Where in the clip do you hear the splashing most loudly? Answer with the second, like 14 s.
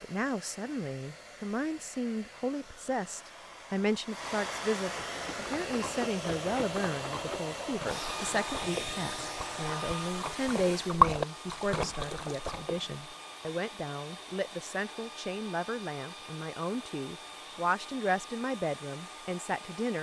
11 s.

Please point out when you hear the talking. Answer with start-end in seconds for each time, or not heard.
0.0-19.9.